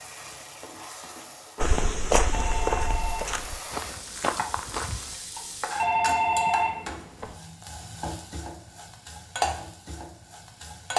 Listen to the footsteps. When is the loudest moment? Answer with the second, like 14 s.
2 s.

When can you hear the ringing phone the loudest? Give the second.
6 s.